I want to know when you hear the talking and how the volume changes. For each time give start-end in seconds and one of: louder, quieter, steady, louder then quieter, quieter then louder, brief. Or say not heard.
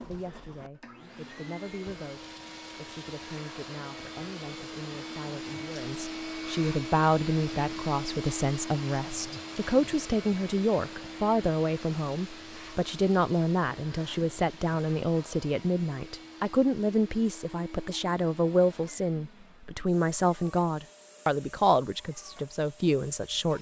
0.0-23.5 louder.